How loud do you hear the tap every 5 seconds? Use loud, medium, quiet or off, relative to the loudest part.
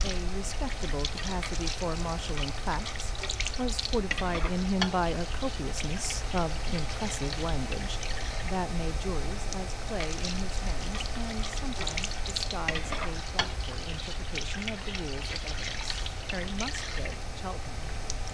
loud, medium, loud, loud.